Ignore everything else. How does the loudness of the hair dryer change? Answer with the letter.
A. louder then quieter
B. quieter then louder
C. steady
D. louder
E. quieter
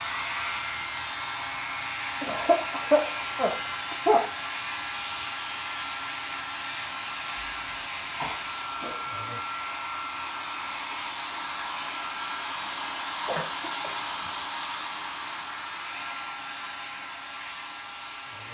C.